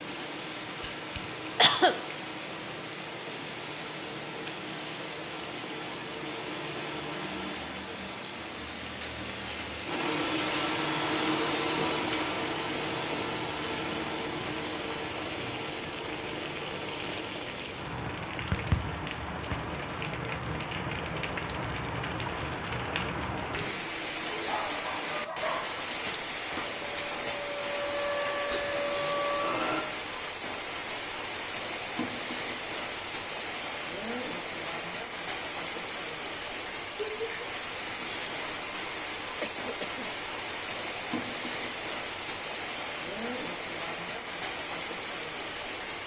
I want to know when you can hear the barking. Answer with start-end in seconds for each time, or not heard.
24.4-25.6.